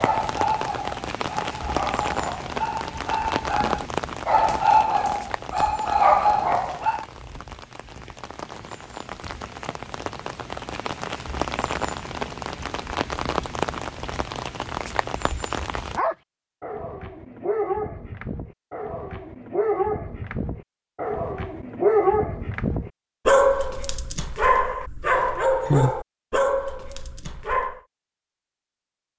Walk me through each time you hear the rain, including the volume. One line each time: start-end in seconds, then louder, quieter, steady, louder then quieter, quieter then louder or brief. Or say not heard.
0.0-16.0 quieter then louder.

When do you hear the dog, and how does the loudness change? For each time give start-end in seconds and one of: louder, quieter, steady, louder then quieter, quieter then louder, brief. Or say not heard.
0.0-7.0 louder
15.9-27.8 louder.